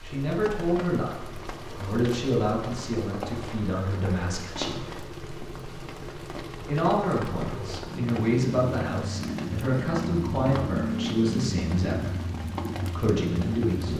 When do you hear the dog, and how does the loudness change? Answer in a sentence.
The dog can't be heard in this clip.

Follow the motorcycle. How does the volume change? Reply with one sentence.
The volume of the motorcycle goes up.